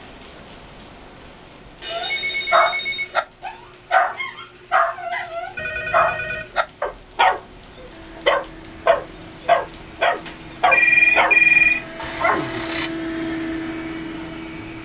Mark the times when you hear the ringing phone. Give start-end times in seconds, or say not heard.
1.8-3.1, 5.5-6.5, 10.2-11.8.